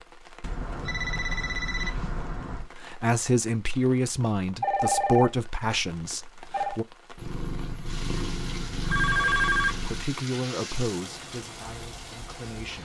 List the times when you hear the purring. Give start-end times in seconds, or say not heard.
7.2-10.1.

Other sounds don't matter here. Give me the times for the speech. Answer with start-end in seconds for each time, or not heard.
2.5-6.8, 9.8-12.7.